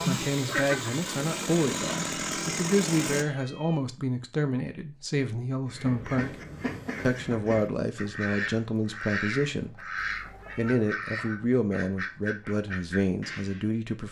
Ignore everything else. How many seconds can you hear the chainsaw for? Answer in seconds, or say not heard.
3 s.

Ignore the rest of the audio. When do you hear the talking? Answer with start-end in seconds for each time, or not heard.
0.0-6.3, 7.0-9.9, 10.6-14.0.